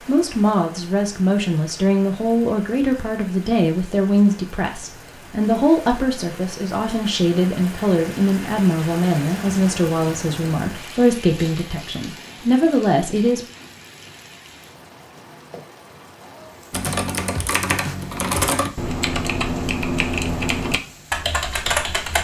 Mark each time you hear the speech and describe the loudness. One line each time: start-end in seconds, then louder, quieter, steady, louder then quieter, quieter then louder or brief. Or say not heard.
0.1-13.4 steady.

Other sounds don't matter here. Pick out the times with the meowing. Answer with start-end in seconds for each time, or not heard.
not heard.